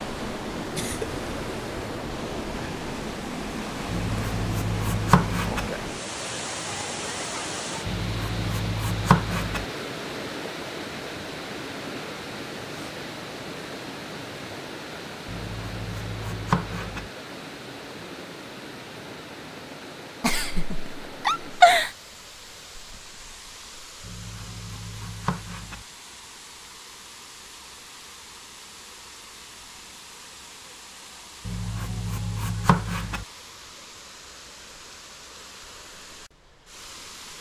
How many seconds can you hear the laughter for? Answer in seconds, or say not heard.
2 s.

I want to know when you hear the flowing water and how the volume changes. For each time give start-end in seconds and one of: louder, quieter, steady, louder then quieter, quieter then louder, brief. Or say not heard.
0.0-37.3 quieter.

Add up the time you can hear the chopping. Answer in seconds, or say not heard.
9 s.